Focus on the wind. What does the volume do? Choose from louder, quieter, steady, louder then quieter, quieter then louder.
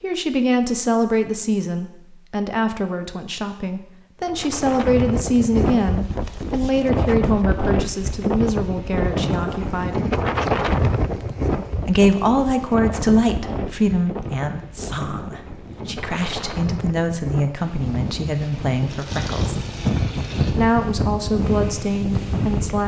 quieter then louder.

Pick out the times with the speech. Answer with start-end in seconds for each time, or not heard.
0.0-10.1, 11.8-19.6, 20.5-22.8.